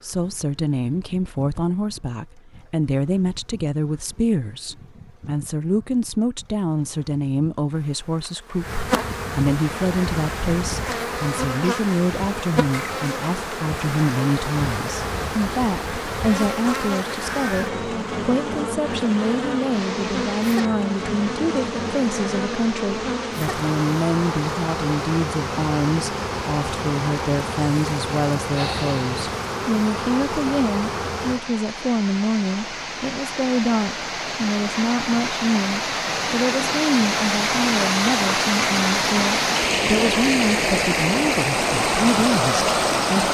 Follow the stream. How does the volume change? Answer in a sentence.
The loudness of the stream goes up.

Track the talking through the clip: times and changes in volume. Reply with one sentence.
The talking can be heard from 0.0 to 43.2 s, at a steady volume.